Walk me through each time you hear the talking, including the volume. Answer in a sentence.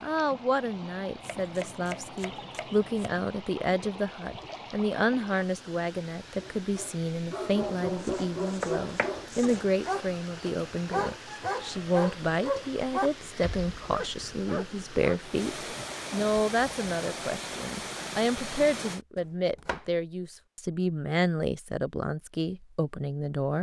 You can hear the talking from 0.0 to 23.5 s, at a steady volume.